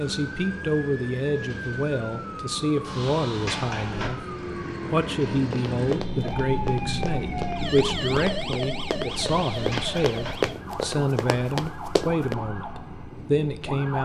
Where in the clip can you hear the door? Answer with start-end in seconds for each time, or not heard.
2.8-4.1, 9.1-10.3.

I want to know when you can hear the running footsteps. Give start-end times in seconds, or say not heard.
5.5-12.3.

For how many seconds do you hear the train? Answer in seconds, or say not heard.
14 s.